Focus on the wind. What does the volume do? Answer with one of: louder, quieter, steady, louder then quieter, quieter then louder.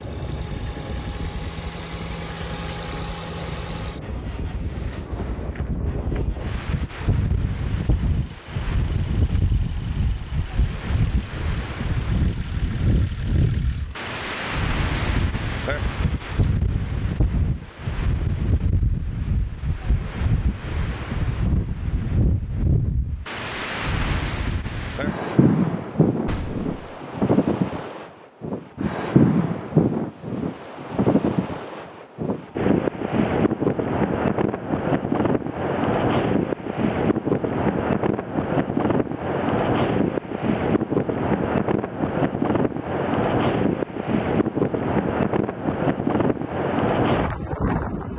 louder.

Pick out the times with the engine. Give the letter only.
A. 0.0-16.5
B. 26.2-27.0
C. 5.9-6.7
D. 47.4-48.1
A.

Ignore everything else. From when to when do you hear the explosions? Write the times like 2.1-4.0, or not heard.
26.2-27.0.